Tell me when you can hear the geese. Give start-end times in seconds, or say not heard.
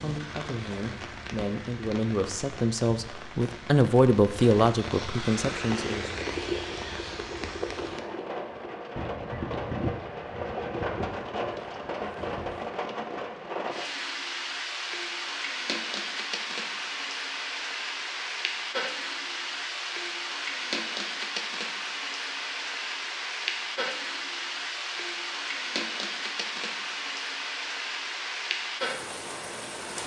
5.4-12.7.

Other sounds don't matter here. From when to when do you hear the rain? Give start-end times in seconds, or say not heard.
0.0-30.0.